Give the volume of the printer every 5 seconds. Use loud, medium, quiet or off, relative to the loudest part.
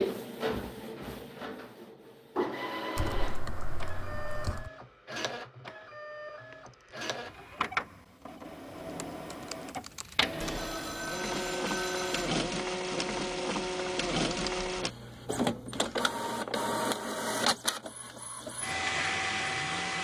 medium, medium, loud, loud.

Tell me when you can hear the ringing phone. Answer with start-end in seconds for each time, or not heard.
6.5-7.0, 10.4-12.3.